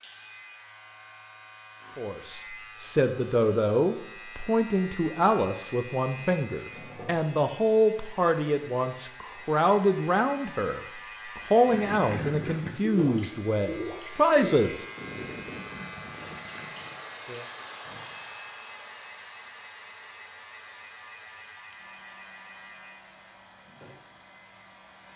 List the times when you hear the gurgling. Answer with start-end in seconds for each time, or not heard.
11.7-17.0.